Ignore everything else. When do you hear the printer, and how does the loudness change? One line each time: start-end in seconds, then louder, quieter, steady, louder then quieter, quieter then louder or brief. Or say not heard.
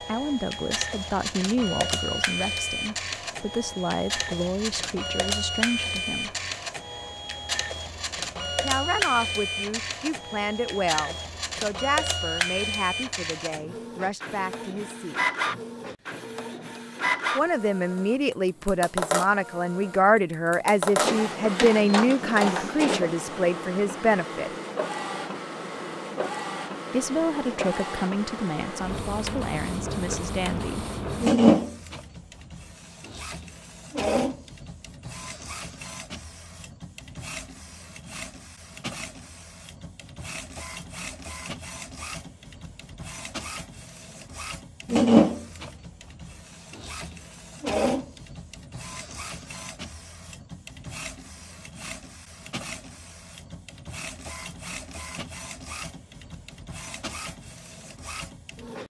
0.0-58.8 quieter.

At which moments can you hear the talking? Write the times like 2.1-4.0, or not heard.
0.0-6.3, 8.6-15.2, 17.4-24.5, 26.9-30.9.